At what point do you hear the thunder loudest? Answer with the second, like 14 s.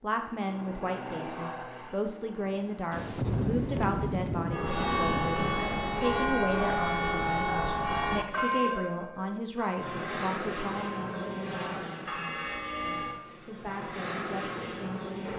3 s.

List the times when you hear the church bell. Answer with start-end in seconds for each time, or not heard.
4.5-13.2.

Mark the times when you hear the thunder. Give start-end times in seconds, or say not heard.
2.9-5.7.